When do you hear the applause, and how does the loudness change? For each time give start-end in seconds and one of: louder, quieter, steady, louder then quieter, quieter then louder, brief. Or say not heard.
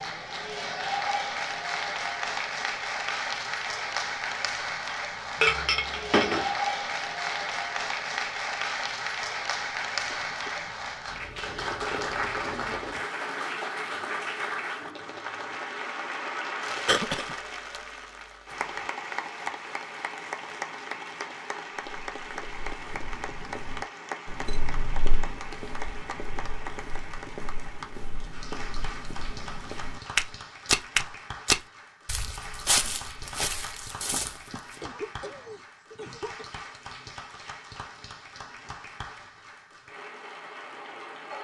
0.0-41.3 quieter.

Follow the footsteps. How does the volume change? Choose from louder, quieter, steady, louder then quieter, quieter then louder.
louder then quieter.